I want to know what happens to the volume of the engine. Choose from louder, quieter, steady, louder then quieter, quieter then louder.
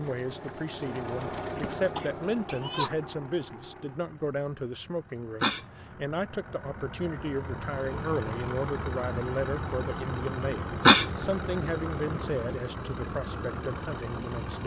quieter then louder.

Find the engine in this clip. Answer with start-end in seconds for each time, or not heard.
0.0-14.6.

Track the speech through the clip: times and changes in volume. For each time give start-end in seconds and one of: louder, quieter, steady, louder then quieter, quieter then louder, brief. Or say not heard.
0.0-14.6 steady.